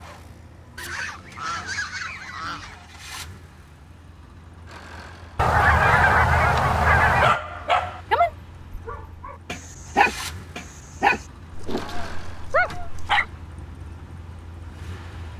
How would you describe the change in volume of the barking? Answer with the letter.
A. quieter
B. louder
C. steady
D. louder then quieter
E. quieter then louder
E.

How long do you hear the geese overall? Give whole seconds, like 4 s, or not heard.
6 s.